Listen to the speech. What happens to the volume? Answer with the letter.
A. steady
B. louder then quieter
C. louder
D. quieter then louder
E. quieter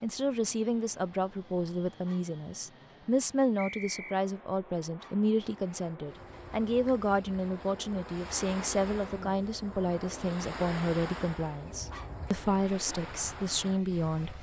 A.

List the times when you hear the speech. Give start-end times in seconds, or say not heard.
0.0-14.3.